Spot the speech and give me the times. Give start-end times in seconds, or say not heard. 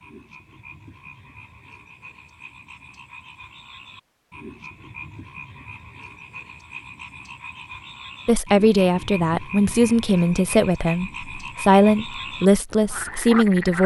8.2-13.8.